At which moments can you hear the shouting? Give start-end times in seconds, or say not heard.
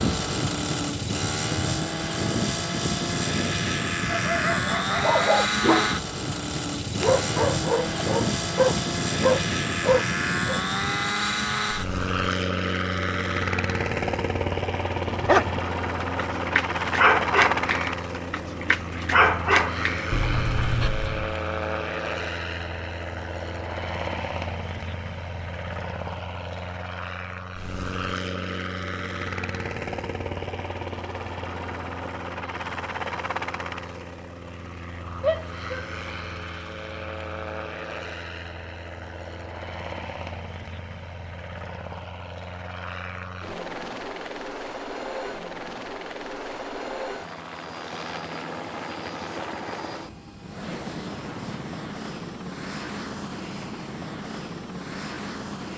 35.2-35.9.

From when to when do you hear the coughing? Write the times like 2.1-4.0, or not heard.
not heard.